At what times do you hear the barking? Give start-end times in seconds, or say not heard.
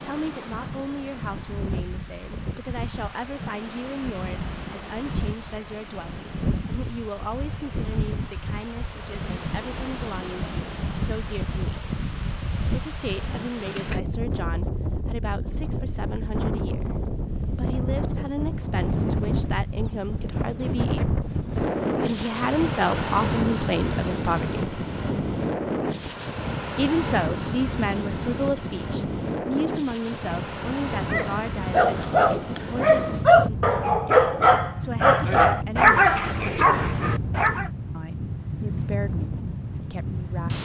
31.1-37.7.